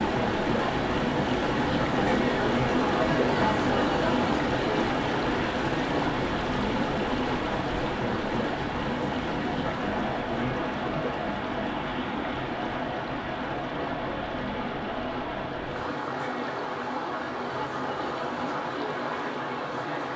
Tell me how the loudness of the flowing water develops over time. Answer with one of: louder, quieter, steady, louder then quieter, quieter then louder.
quieter.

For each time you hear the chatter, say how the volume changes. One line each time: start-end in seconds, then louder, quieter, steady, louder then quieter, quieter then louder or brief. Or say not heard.
0.1-20.1 quieter.